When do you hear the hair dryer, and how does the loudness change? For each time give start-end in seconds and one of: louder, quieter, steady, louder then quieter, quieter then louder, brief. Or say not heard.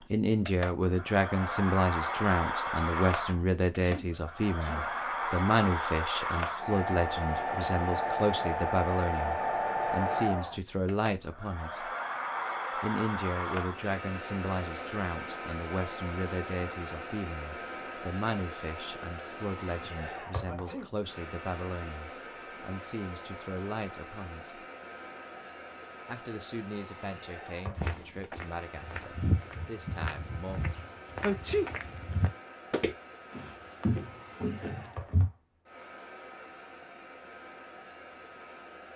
0.0-38.9 quieter.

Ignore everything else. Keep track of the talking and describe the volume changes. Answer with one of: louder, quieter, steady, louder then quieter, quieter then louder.
quieter.